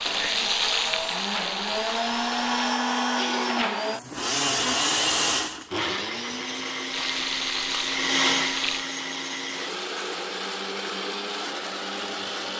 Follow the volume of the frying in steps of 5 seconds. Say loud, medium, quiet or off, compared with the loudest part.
loud, loud, off.